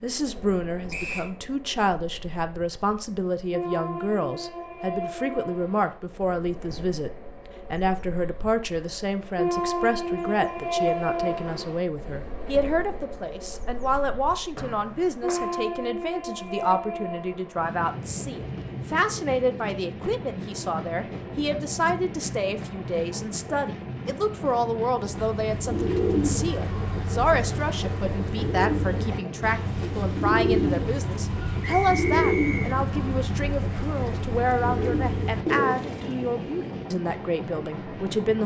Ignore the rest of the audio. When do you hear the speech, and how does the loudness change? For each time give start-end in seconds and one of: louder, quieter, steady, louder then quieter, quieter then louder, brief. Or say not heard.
0.0-38.4 steady.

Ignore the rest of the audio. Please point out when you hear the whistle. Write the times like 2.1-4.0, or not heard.
0.9-1.3, 14.6-15.5, 31.6-32.8.